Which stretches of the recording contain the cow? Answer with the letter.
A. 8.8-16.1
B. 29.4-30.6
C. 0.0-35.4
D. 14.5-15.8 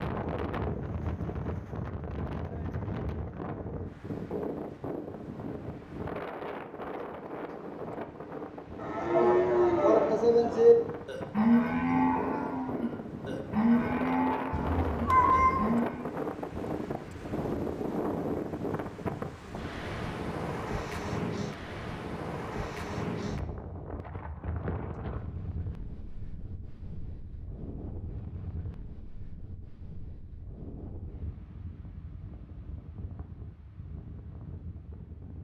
A.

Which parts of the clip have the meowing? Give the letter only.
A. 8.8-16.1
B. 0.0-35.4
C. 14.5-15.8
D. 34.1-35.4
C.